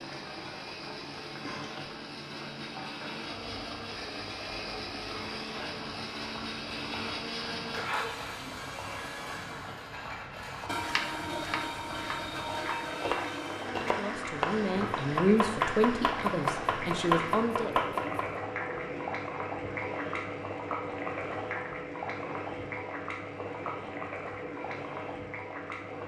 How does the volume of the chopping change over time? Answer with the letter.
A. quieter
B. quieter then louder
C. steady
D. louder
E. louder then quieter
D.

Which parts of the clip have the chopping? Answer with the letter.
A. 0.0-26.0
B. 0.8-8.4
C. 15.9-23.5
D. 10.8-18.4
D.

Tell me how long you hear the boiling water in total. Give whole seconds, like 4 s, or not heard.
26 s.